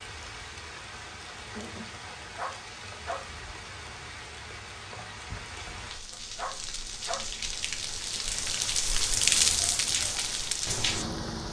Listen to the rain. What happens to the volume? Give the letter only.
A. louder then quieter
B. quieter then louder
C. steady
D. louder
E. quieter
D.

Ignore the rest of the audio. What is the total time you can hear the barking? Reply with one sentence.
The barking can be heard for 2 seconds in total.